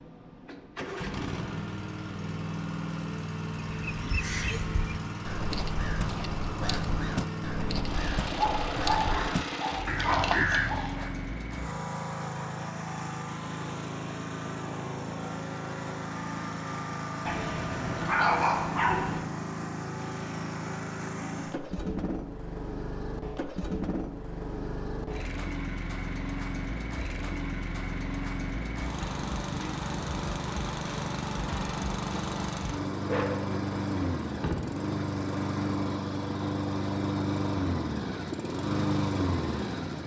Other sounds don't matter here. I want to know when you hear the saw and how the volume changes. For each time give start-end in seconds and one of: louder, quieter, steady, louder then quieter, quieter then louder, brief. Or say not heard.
not heard.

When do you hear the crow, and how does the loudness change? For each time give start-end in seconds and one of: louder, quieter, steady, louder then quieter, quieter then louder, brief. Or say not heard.
3.7-11.1 louder.